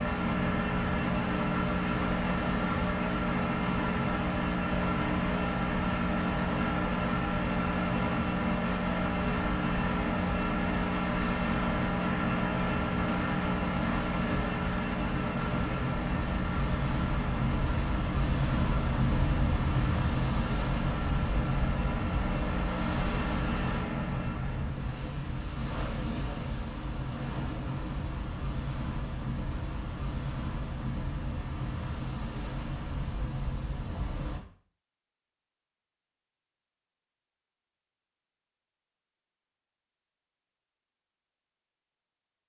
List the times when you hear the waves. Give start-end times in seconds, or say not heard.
0.1-34.4.